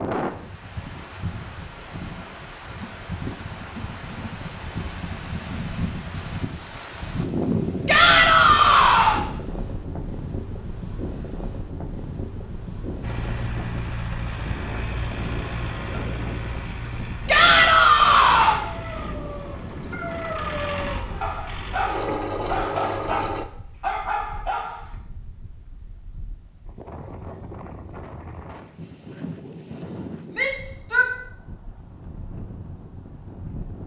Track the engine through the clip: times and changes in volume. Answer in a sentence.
The engine can be heard from 13.0 to 23.4 s, getting quieter then louder.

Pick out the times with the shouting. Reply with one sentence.
You can hear the shouting from 7.8 to 9.2 s, from 17.2 to 18.6 s and from 30.4 to 31.1 s.